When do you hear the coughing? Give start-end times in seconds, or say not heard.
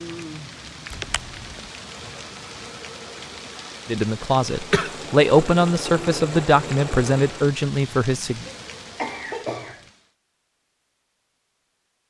0.9-1.6, 4.5-5.0, 8.4-9.8.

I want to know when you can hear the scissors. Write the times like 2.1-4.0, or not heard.
not heard.